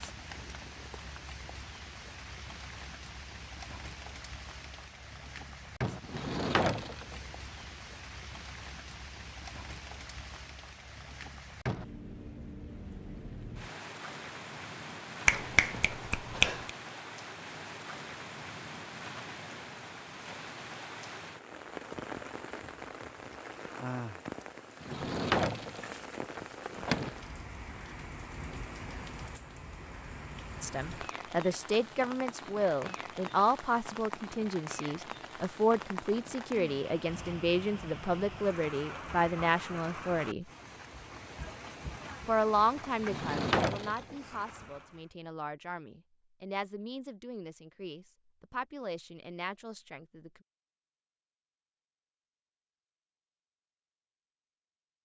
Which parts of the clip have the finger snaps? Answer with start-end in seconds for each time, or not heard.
15.2-16.7.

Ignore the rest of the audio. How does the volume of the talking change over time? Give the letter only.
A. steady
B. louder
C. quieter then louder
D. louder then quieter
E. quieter
E.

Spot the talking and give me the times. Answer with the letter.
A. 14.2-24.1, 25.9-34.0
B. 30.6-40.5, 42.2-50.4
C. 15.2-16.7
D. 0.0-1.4
B.